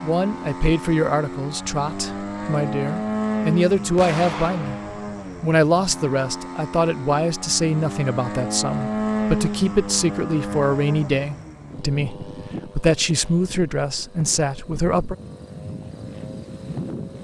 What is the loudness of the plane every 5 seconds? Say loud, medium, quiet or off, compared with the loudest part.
loud, loud, medium, medium.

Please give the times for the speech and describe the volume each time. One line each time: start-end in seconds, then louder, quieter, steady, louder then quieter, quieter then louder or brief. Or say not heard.
0.0-4.8 quieter then louder
5.4-15.2 steady.